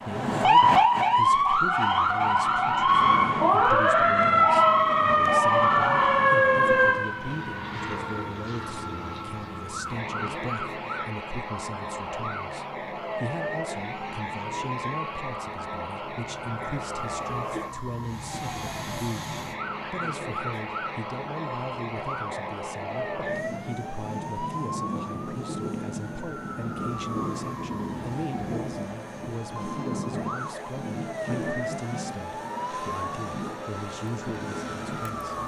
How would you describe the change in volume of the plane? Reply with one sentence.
The volume of the plane stays about the same.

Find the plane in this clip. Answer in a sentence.
The plane can be heard from 6.9 to 35.4 s.